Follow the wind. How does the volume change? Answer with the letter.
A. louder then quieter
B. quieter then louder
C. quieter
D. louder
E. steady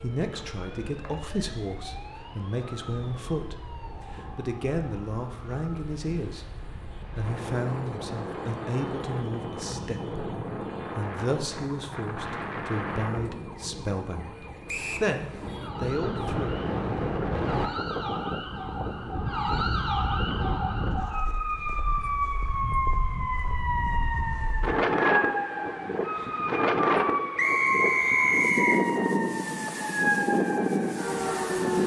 D.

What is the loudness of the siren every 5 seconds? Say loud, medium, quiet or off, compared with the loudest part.
quiet, quiet, quiet, medium, loud, loud, loud.